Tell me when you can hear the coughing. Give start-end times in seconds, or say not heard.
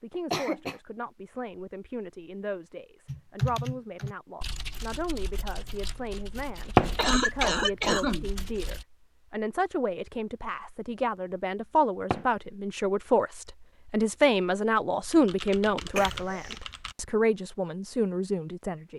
0.1-0.8, 7.0-8.3, 15.9-16.6.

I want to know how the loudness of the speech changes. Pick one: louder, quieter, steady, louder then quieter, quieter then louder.
louder.